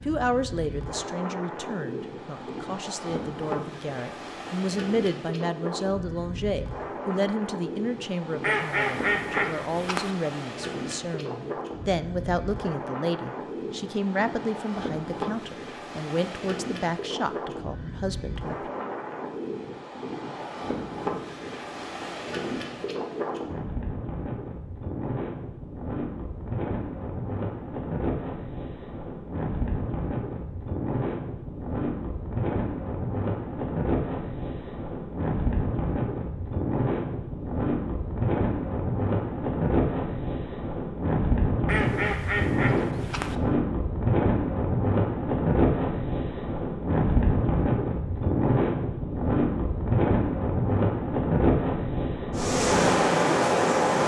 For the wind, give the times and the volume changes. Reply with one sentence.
The wind can be heard from 0.0 to 54.0 s, getting louder.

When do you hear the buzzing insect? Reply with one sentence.
The buzzing insect can be heard from 52.3 to 54.0 s.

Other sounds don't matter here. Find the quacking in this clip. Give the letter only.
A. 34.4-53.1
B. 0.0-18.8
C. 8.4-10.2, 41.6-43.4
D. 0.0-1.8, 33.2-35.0
C.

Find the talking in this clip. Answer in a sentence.
You can hear the talking from 0.0 to 18.8 s.